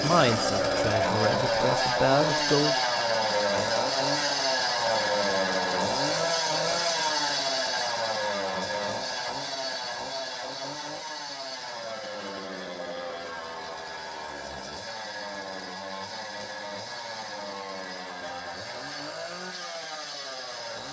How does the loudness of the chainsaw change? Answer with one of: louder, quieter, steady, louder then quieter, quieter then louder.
quieter.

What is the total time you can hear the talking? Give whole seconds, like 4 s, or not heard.
3 s.